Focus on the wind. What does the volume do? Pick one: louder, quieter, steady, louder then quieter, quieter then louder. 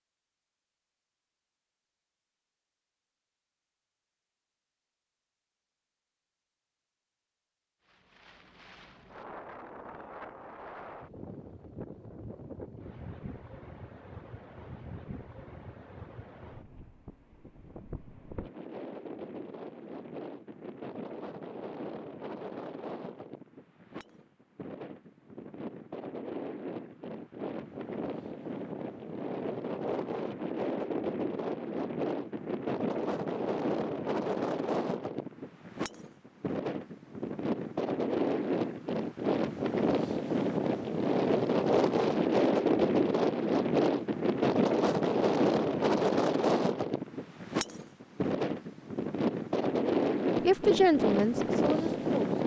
louder.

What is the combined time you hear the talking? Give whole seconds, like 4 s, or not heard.
2 s.